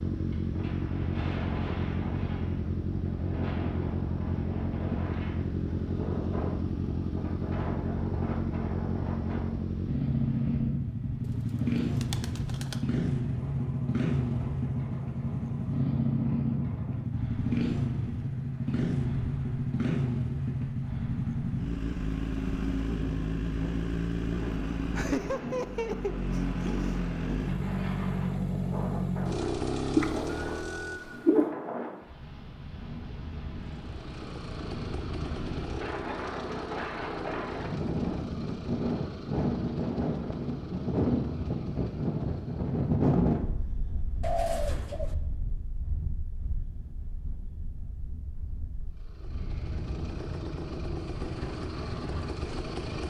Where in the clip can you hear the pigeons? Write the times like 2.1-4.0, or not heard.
11.5-12.8, 29.9-31.4, 44.2-45.1.